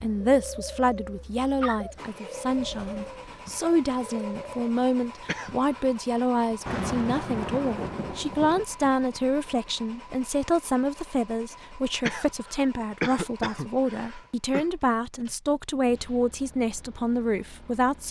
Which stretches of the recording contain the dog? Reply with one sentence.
The dog can't be heard in this clip.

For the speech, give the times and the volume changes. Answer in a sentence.
The speech can be heard from 0.0 to 18.0 s, at a steady volume.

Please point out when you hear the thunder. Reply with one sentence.
The thunder can be heard from 6.7 to 8.7 s.